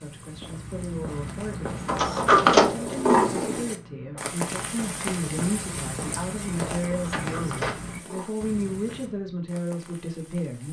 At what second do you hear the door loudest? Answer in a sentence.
The loudest moment of the door is at 2 seconds.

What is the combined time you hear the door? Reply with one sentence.
The door can be heard for 3 seconds in total.